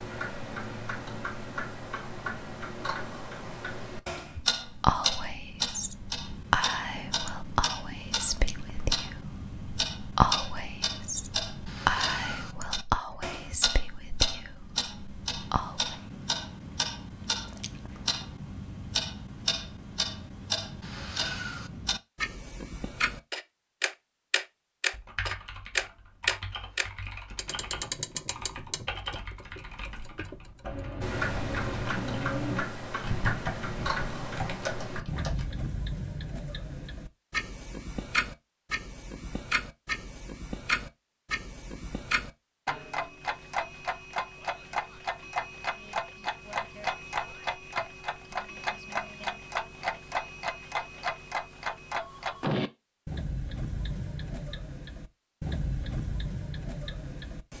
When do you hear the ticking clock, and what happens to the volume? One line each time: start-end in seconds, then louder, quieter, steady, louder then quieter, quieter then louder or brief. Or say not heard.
0.0-57.5 steady.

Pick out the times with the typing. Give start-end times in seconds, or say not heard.
24.9-35.5.